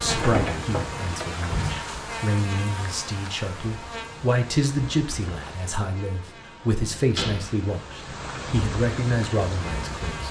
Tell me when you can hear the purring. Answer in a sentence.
The purring can't be heard in this clip.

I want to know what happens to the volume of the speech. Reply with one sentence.
The loudness of the speech goes up.